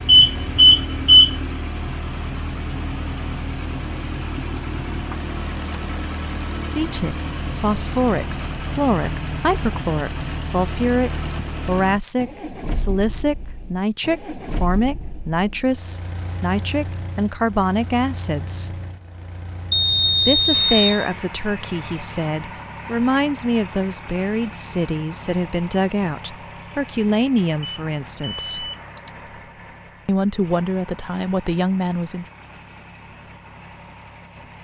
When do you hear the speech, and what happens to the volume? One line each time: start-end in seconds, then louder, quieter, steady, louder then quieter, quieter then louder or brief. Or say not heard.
6.7-18.8 steady
20.1-28.7 steady
30.1-32.2 brief.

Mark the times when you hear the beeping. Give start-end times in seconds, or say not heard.
0.1-1.4, 19.7-21.1, 27.6-29.1.